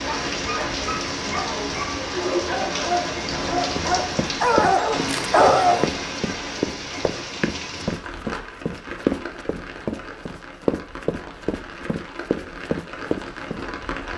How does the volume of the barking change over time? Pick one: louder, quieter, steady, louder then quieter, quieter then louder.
louder.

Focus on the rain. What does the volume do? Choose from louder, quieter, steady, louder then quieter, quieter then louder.
quieter.